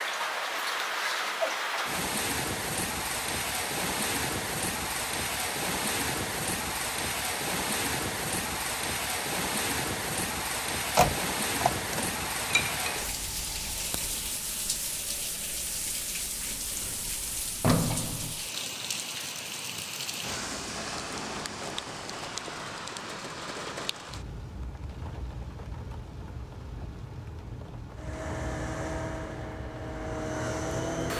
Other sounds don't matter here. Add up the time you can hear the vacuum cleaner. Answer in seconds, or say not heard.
3 s.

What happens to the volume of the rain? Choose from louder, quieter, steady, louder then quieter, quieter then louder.
quieter.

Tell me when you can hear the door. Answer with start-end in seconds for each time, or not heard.
10.9-12.1, 16.4-18.4.